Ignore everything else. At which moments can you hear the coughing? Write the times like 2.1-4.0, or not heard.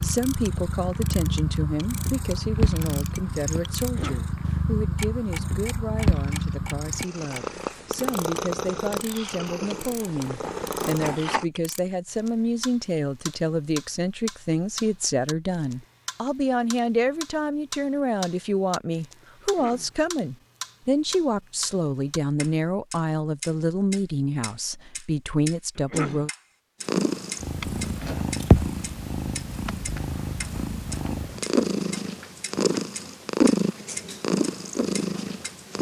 3.8-4.3, 19.4-19.9, 25.8-26.3.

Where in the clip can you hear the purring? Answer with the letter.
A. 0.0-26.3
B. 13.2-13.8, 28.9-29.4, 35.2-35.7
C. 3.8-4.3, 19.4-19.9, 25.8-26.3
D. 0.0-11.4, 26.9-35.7
D.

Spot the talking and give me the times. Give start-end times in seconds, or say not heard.
0.0-26.3.